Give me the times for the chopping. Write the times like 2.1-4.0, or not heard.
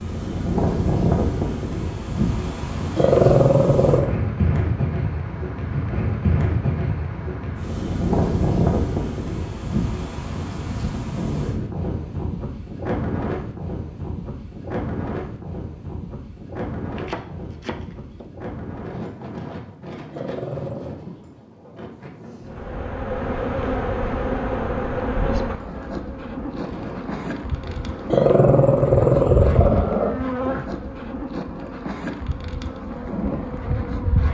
16.9-18.3.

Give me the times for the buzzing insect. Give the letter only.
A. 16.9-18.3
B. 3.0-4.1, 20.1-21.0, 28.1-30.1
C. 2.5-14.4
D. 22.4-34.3
D.